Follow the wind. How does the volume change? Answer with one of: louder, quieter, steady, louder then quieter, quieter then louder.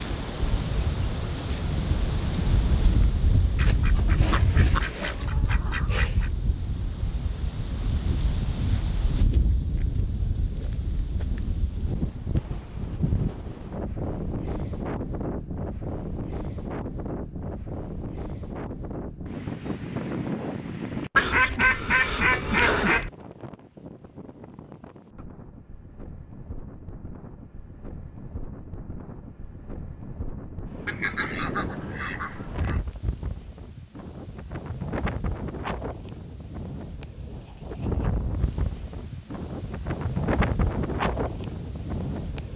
quieter then louder.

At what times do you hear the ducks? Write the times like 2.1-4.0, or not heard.
3.5-6.3, 21.1-23.1, 30.9-32.8.